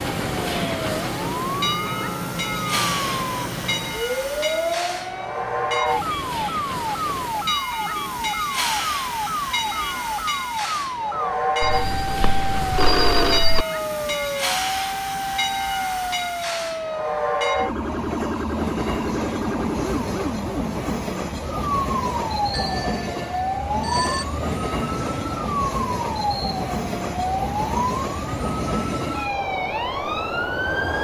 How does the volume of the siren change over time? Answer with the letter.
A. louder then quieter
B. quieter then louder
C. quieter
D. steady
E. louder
D.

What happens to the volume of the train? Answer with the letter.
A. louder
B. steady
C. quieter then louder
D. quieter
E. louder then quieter
B.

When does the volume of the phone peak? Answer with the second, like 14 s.
13 s.